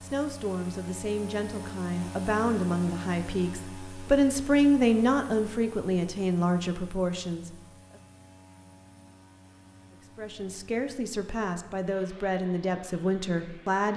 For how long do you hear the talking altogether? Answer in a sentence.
The talking can be heard for 12 seconds in total.